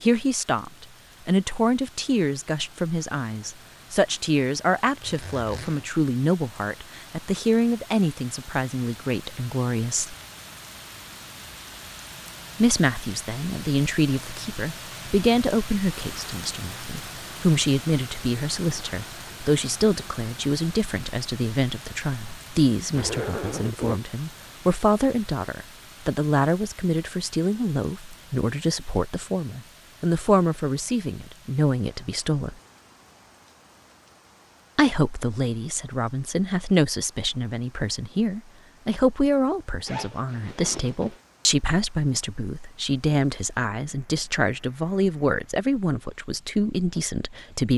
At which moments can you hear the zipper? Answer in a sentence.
You can hear the zipper from 4.8 to 5.8 s, from 22.9 to 24.0 s and from 39.9 to 41.2 s.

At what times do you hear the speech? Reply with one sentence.
You can hear the speech from 0.0 to 10.2 s, from 12.6 to 32.5 s and from 34.8 to 47.7 s.